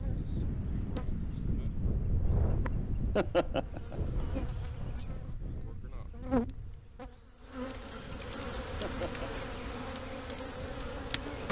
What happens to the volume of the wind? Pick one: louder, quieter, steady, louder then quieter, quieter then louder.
quieter.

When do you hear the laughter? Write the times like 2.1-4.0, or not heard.
3.1-4.0, 8.8-9.4.